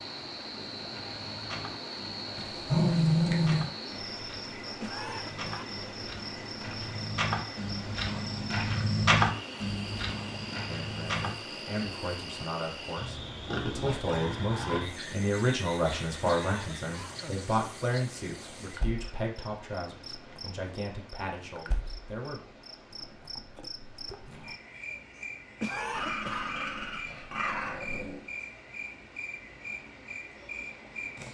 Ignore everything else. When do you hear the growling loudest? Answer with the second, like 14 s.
3 s.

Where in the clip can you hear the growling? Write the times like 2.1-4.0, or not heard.
2.4-3.7, 13.4-14.8, 25.9-28.2.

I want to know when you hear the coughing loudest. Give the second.
26 s.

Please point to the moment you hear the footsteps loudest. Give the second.
9 s.